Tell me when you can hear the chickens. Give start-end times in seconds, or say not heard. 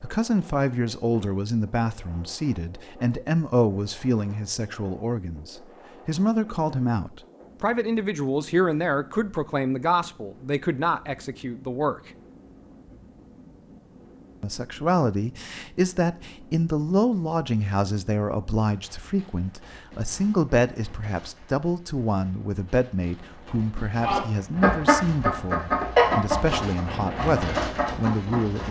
24.0-28.6.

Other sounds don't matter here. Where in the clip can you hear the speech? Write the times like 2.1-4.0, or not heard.
0.0-12.1, 14.4-28.6.